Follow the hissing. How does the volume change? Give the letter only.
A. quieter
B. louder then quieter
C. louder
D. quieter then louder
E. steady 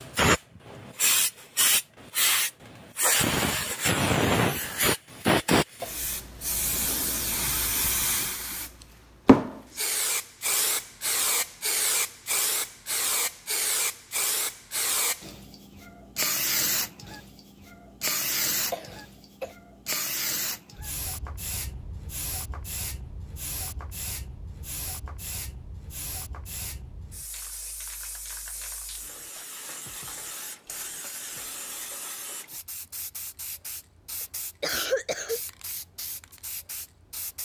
A.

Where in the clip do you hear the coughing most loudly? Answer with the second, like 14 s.
35 s.